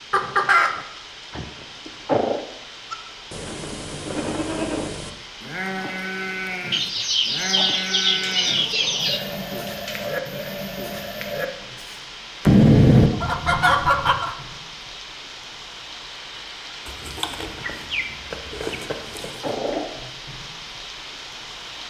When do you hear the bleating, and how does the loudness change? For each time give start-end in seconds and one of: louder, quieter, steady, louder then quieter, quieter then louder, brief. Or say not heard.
2.9-12.0 steady.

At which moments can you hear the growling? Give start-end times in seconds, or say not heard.
1.3-2.4, 8.2-10.1, 18.6-19.9.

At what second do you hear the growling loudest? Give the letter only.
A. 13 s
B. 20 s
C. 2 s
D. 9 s
C.